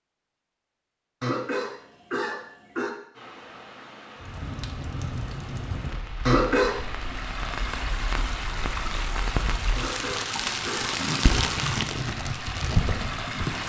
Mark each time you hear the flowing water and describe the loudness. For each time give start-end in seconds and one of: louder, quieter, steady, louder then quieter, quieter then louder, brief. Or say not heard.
3.1-13.6 louder.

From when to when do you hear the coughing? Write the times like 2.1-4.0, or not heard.
1.2-2.9, 6.2-6.8, 9.8-11.4.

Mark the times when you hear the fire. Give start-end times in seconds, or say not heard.
4.2-13.6.